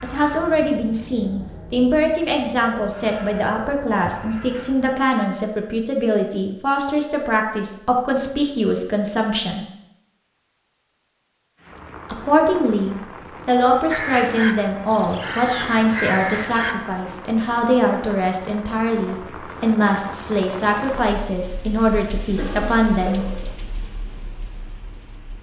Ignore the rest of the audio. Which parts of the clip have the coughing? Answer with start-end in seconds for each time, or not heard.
22.4-23.6.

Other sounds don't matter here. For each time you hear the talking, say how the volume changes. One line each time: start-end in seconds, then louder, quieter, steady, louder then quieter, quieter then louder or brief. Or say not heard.
0.0-9.7 steady
12.1-23.2 steady.